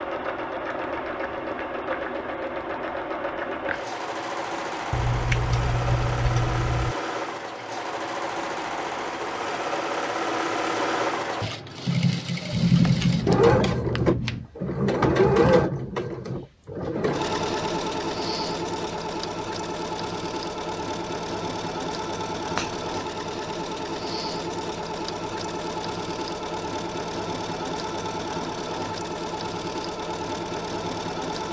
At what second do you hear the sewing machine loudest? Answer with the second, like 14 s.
13 s.